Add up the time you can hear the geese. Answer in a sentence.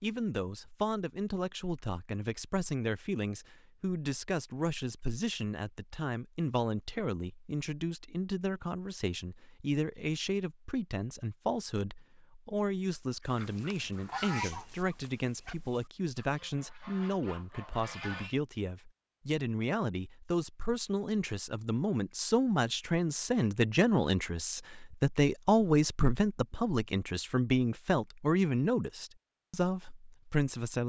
The geese can be heard for 5 seconds in total.